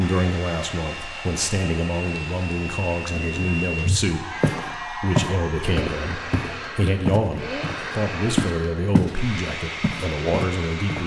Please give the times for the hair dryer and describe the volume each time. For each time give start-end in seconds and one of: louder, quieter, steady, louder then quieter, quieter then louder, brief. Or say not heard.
0.0-11.0 steady.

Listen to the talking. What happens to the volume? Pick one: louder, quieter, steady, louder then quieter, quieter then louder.
steady.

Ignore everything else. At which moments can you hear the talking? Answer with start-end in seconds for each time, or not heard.
0.0-11.0.